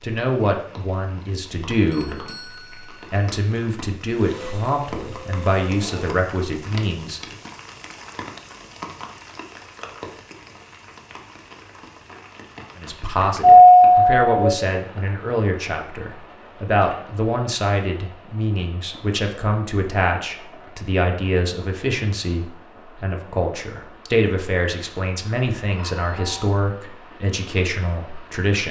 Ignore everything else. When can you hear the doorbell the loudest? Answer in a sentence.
The volume of the doorbell peaks at 14 seconds.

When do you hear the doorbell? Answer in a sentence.
You can hear the doorbell from 1.9 to 3.0 s, from 13.4 to 14.7 s and from 25.8 to 26.6 s.